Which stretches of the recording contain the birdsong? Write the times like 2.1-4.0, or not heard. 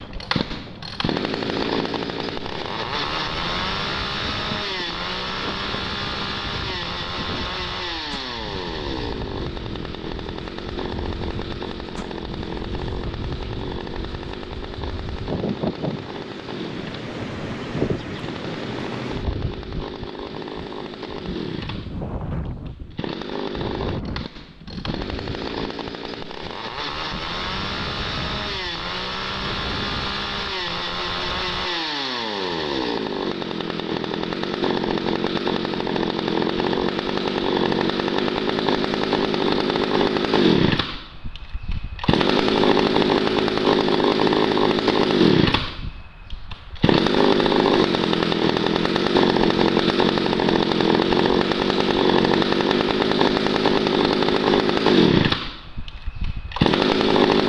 not heard.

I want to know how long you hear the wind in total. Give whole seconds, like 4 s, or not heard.
30 s.